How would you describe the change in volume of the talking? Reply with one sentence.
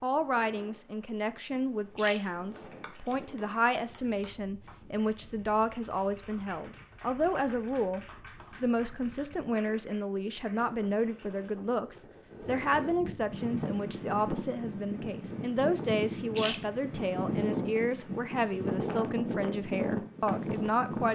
The volume of the talking stays about the same.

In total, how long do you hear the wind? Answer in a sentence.
The wind can be heard for 21 seconds in total.